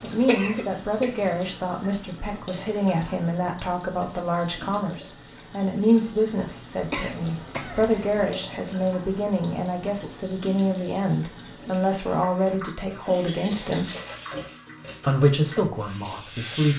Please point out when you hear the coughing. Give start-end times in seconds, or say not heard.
0.2-1.1, 6.8-8.3, 13.1-13.8.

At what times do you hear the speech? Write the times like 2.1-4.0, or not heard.
0.0-13.8, 15.1-16.7.